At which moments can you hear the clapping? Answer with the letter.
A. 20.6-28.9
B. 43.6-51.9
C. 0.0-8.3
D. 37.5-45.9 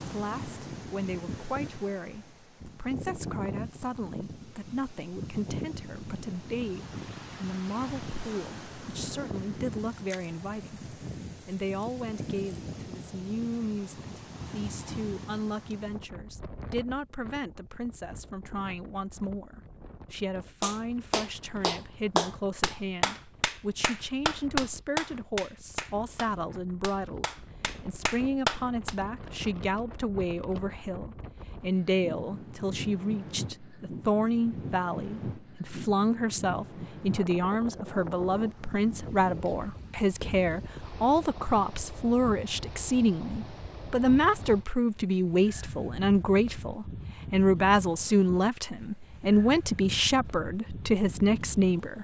A.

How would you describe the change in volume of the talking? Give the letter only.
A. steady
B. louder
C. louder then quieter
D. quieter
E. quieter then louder
B.